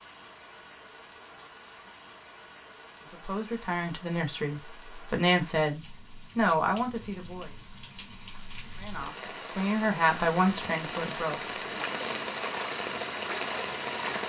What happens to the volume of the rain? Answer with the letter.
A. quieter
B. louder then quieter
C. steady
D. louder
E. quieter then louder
D.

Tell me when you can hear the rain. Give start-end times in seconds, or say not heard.
0.0-14.2.